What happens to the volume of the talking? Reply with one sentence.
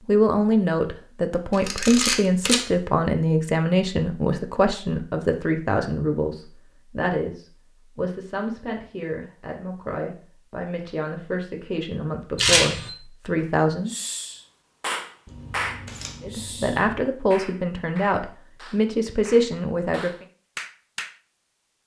The volume of the talking goes down, then up.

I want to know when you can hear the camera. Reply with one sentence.
The camera can be heard from 1.5 to 2.6 s, from 12.3 to 12.9 s and from 15.2 to 16.8 s.